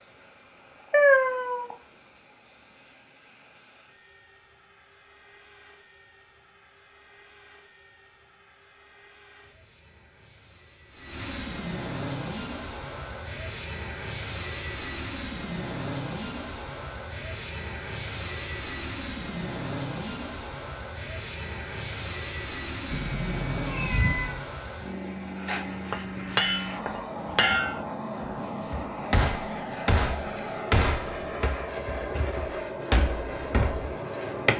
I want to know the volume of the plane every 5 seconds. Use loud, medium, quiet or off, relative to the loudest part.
quiet, quiet, loud, loud, loud, loud, loud.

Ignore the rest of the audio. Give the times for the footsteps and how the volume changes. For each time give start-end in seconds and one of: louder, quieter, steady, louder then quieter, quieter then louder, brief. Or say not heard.
not heard.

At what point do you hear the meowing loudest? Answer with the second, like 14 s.
1 s.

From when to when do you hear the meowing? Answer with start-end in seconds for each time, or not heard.
0.9-1.8, 22.9-24.4.